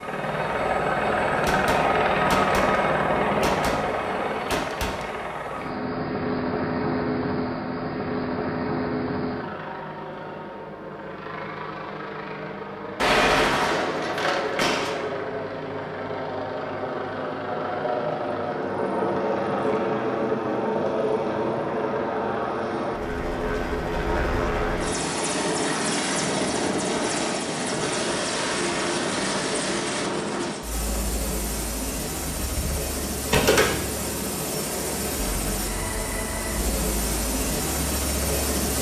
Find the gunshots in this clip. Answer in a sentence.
The gunshots can be heard from 1.4 to 5.2 s, from 12.9 to 14.9 s and from 32.4 to 33.9 s.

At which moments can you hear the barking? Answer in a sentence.
The barking can't be heard in this clip.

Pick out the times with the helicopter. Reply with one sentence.
The helicopter can be heard from 0.0 to 38.7 s.